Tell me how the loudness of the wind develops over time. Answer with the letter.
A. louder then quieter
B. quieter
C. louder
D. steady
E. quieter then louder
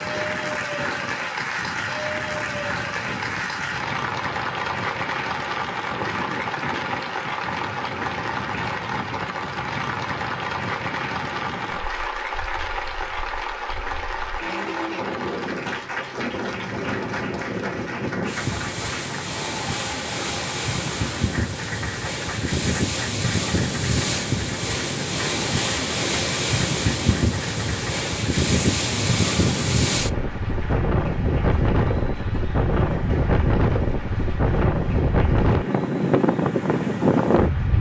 C.